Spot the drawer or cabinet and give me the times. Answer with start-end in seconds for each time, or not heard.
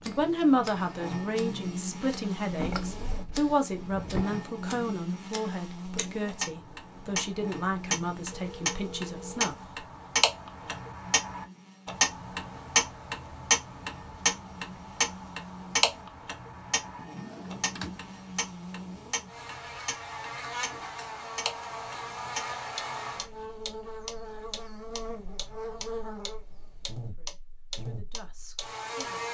2.4-4.2, 16.9-18.0.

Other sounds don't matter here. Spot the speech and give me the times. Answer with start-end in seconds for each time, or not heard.
0.1-9.6, 26.9-29.2.